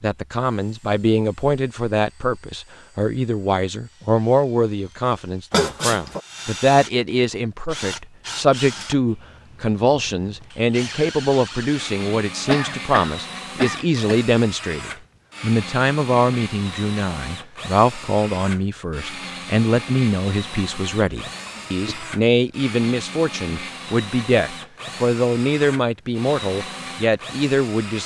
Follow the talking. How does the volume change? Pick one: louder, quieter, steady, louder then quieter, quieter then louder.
steady.